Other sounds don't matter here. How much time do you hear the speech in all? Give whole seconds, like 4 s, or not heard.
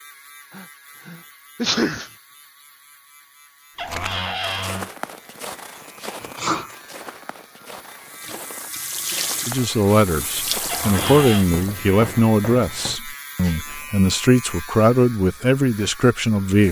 7 s.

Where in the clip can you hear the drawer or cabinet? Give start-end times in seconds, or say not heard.
3.8-4.9, 10.7-11.4.